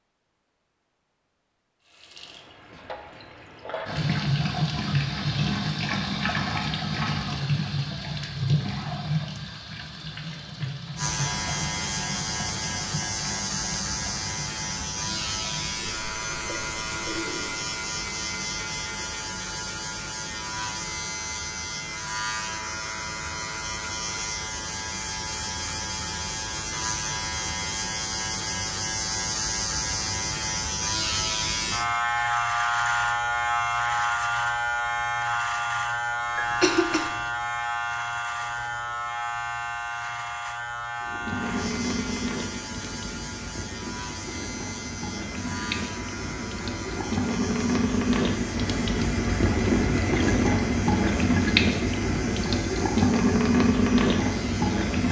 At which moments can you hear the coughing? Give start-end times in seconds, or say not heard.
36.4-37.2.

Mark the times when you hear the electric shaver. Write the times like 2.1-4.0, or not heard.
10.9-55.0.